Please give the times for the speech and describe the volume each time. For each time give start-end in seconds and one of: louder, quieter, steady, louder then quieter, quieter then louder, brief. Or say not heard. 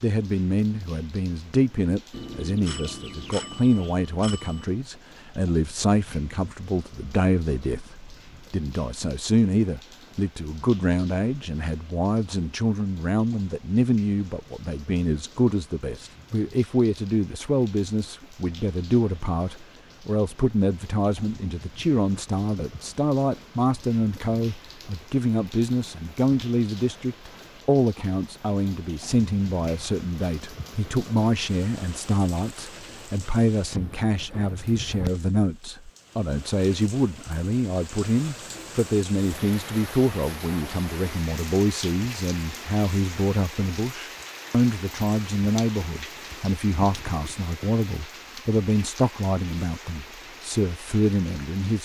0.0-51.8 steady.